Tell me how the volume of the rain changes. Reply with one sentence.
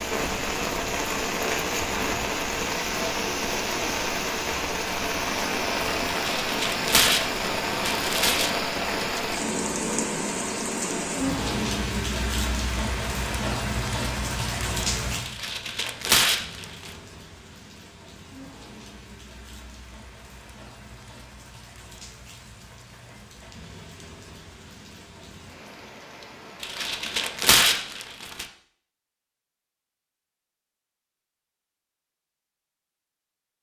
The volume of the rain goes down.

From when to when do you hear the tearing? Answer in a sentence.
The tearing can be heard from 6.2 to 8.6 s, from 15.2 to 16.9 s and from 26.6 to 28.4 s.